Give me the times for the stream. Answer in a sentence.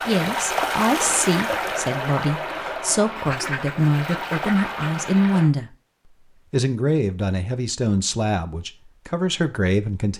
The stream can be heard from 0.0 to 5.5 s.